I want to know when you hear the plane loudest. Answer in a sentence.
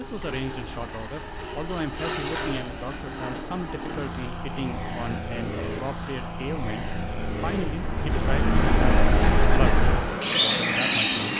The loudest moment of the plane is at 9 seconds.